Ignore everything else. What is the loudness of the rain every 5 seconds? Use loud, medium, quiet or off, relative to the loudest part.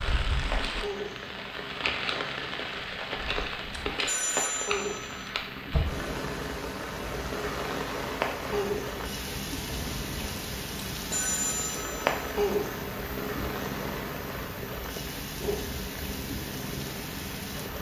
loud, loud, loud, medium.